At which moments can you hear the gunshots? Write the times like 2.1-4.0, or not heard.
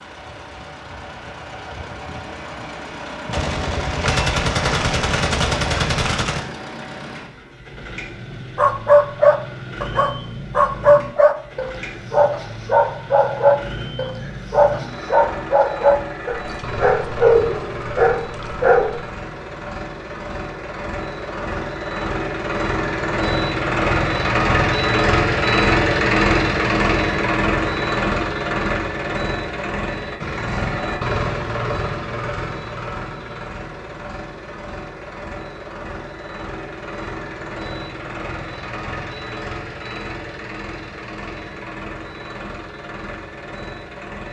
3.2-6.5.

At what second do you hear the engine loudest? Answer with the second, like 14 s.
26 s.